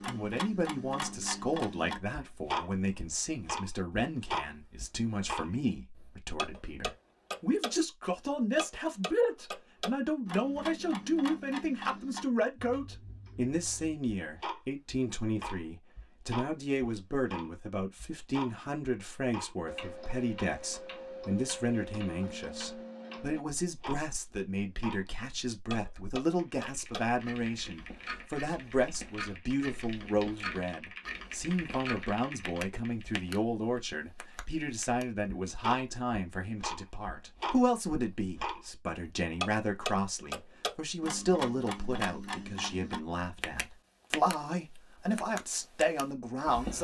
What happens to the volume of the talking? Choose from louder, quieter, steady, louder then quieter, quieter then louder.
steady.